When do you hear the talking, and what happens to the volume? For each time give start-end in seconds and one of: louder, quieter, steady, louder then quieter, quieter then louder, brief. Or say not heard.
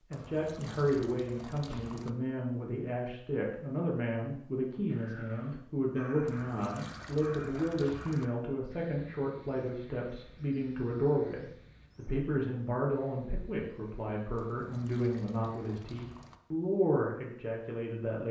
0.1-18.2 steady.